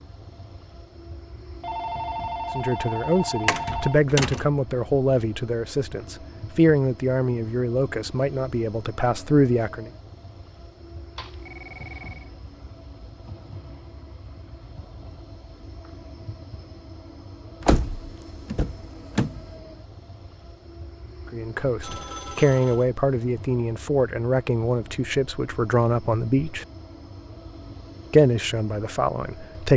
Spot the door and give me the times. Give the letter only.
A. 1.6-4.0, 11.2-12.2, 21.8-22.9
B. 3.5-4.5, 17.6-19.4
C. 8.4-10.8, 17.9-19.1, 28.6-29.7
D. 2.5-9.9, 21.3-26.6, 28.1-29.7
B.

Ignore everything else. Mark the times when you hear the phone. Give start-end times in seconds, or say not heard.
1.6-4.0, 11.2-12.2, 21.8-22.9.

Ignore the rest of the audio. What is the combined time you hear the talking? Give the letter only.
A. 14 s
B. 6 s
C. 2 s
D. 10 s
A.